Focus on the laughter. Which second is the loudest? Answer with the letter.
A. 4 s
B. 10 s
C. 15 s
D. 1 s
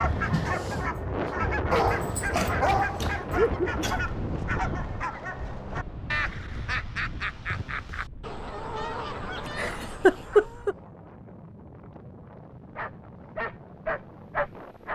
B.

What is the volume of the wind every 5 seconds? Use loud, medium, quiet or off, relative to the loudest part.
loud, medium, quiet.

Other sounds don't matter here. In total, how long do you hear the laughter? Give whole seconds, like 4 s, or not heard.
2 s.